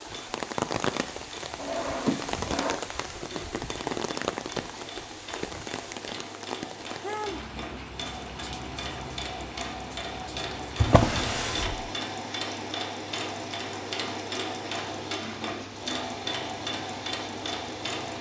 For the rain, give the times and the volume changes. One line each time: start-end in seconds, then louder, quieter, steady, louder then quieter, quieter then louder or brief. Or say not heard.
0.0-18.1 quieter.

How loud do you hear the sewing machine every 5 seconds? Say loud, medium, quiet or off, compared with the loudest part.
medium, medium, loud, loud.